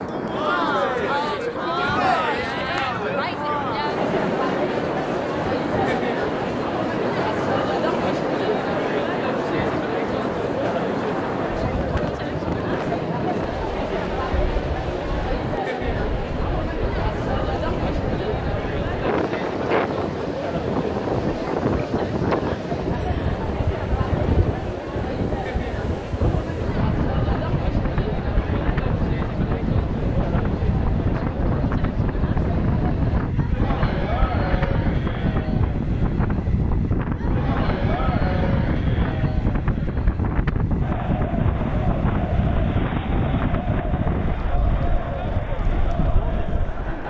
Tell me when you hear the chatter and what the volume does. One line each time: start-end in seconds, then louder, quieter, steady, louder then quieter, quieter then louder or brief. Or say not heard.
0.1-47.0 quieter.